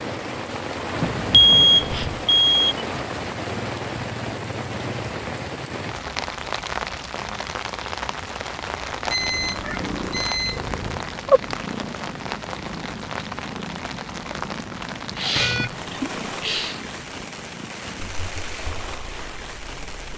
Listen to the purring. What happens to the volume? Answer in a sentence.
The volume of the purring goes down.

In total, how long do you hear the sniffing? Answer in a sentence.
The sniffing can be heard for 3 seconds in total.